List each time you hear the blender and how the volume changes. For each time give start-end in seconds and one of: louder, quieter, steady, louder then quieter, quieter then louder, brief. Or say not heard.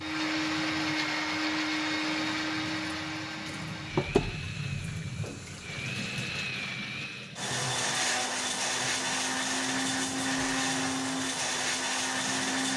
0.0-12.7 quieter then louder.